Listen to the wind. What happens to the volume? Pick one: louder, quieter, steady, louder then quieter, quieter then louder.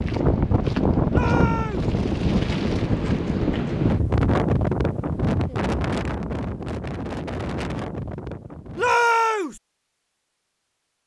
quieter.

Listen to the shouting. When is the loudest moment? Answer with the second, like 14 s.
9 s.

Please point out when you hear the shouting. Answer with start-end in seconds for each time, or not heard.
1.1-1.9, 8.8-9.6.